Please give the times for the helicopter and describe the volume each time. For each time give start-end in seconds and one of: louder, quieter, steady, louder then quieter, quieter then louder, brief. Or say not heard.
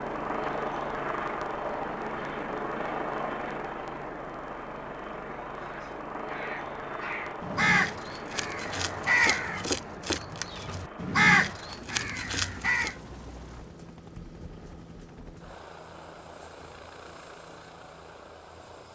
0.0-18.9 quieter.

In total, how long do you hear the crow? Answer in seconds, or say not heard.
7 s.